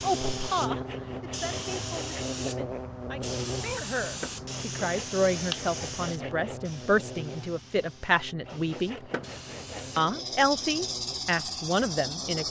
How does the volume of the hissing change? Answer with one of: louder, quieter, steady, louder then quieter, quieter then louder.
quieter then louder.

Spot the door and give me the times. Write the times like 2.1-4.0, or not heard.
4.0-4.5, 8.9-9.5.